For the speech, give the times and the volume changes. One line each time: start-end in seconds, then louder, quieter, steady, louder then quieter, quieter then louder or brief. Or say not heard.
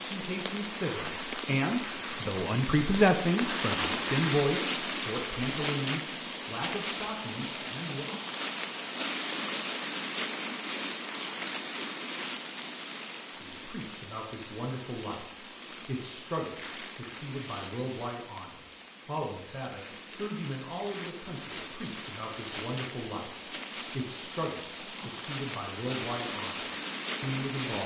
0.1-8.1 louder then quieter
13.3-27.8 steady.